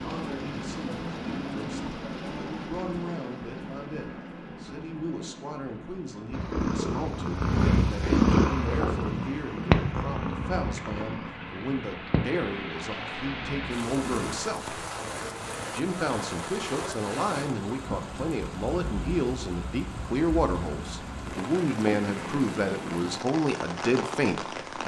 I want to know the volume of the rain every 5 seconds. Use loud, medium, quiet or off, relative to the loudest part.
loud, medium, loud, loud, loud.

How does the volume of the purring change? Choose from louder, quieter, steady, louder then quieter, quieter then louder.
quieter.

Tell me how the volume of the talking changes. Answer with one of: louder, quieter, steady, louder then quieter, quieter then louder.
louder.